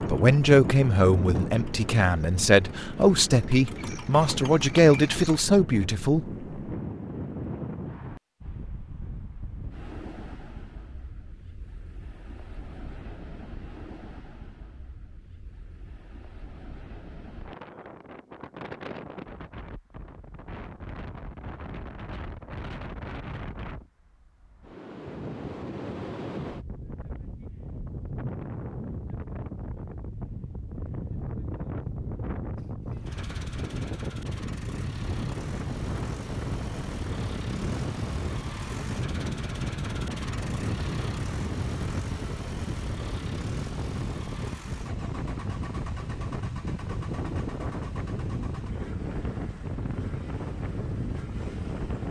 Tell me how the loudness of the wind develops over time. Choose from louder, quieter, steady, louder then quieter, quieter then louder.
quieter then louder.